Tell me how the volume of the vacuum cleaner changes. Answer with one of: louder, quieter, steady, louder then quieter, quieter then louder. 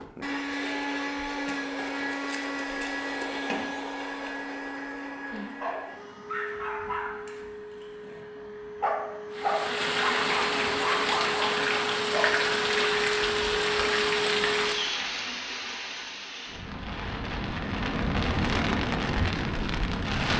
quieter then louder.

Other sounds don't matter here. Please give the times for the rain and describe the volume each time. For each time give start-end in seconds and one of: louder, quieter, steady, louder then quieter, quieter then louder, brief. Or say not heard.
9.3-20.3 quieter then louder.